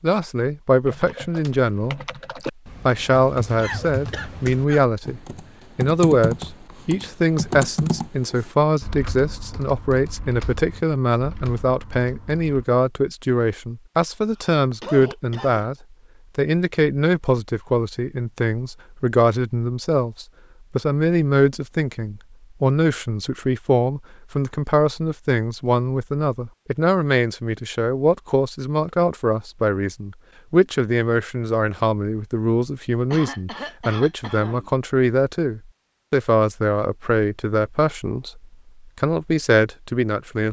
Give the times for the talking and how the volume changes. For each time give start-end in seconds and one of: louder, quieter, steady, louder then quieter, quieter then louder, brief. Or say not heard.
0.0-2.0 brief
2.9-15.8 steady
16.4-40.4 steady.